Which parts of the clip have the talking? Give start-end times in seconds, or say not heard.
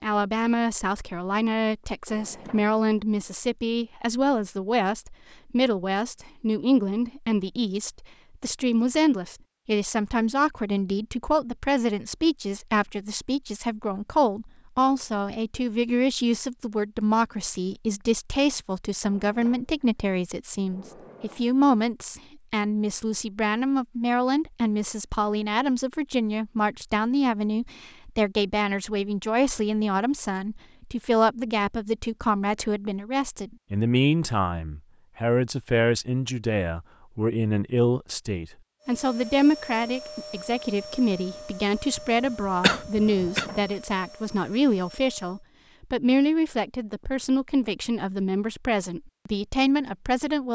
0.0-50.5.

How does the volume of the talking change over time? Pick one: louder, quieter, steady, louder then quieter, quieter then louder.
steady.